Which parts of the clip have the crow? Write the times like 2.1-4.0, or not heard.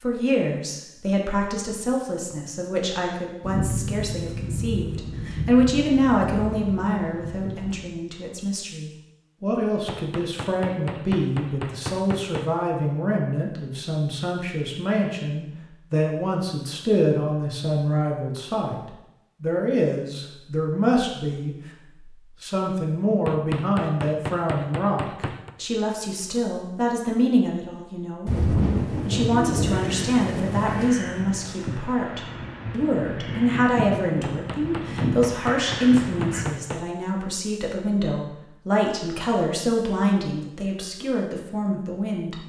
28.9-36.5.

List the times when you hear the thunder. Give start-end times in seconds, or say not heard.
3.4-8.0, 28.2-30.9.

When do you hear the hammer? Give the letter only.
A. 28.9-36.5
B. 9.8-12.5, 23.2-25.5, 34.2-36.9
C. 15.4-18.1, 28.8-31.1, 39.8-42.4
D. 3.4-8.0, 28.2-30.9
B.